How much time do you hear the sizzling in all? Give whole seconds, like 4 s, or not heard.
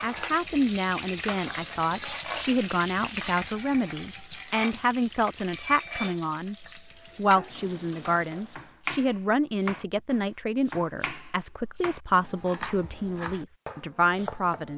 9 s.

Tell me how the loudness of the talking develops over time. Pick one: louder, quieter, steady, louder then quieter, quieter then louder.
steady.